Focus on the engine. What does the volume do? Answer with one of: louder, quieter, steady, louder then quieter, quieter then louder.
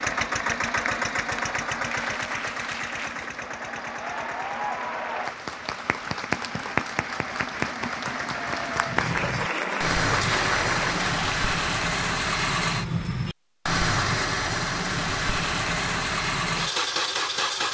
quieter then louder.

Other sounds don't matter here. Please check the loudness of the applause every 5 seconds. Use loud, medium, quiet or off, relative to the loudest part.
medium, loud, loud, off.